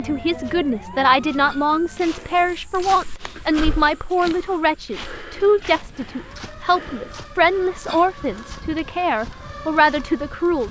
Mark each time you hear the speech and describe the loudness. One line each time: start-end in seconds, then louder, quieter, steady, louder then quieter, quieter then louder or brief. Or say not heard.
0.0-10.6 steady.